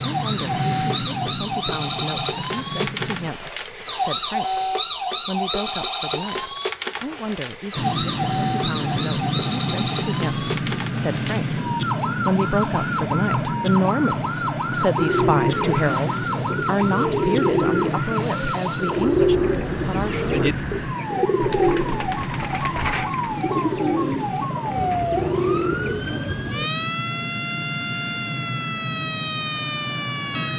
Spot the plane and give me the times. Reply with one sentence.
The plane can be heard from 0.0 to 3.3 s and from 7.8 to 30.5 s.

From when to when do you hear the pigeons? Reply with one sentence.
The pigeons can be heard from 14.9 to 26.7 s.